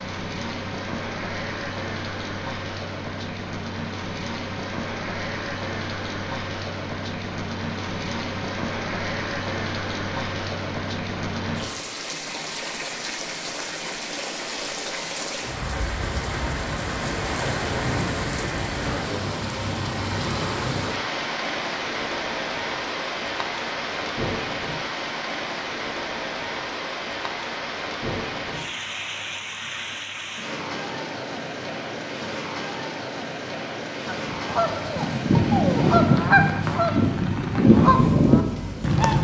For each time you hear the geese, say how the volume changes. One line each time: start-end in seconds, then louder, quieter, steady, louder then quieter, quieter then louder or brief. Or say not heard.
34.0-39.1 louder.